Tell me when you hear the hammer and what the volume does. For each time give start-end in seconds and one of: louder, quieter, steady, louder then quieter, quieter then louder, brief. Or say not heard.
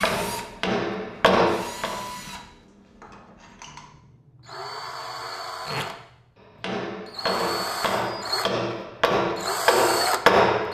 0.0-2.0 brief
6.3-10.6 louder.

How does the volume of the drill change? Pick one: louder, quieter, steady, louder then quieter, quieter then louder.
quieter then louder.